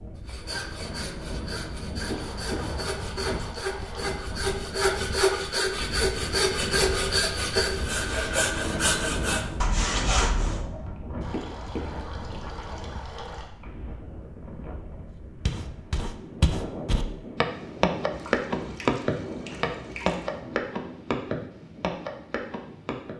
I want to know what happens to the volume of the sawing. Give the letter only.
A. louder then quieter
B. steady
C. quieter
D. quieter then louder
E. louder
E.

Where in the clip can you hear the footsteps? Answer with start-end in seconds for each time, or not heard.
15.4-23.1.